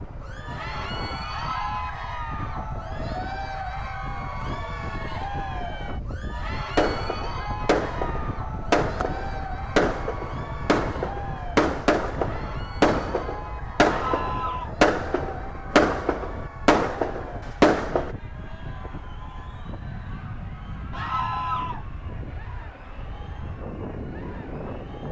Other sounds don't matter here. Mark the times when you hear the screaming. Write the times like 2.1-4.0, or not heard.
1.2-1.9, 13.8-14.8, 20.9-21.9.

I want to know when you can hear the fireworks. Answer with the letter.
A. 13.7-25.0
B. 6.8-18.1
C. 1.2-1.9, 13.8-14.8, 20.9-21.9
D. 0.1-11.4
B.